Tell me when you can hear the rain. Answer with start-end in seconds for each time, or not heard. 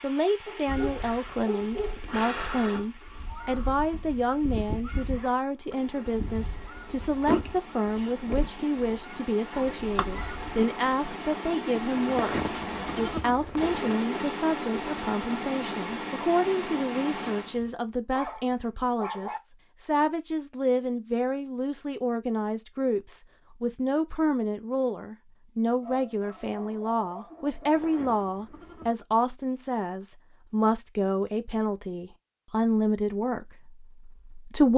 0.0-17.6.